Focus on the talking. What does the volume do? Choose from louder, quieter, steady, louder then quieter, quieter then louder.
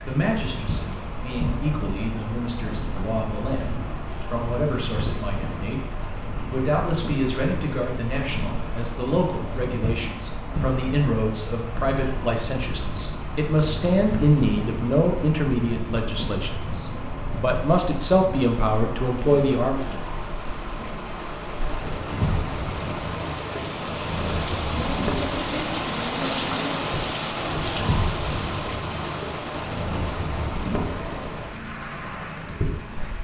louder.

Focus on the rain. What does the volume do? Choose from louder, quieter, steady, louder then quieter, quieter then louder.
louder.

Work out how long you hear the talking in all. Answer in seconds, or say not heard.
20 s.